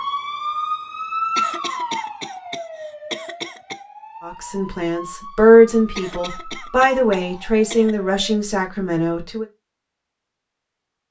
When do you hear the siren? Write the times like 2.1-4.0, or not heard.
0.0-8.4.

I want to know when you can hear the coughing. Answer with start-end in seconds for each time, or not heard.
1.4-3.8, 6.0-8.0.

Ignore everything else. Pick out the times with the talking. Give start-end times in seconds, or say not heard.
4.2-9.4.